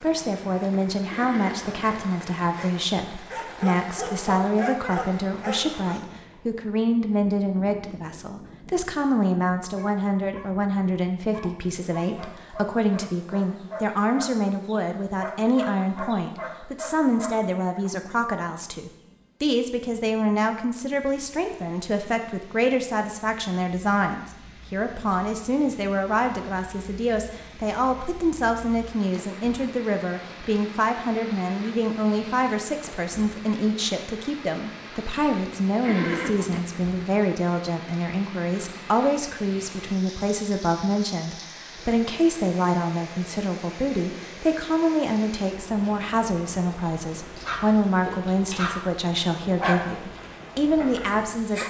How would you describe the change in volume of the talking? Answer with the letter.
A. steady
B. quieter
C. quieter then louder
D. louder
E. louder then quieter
A.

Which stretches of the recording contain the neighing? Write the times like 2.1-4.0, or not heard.
1.1-1.9, 35.8-36.6.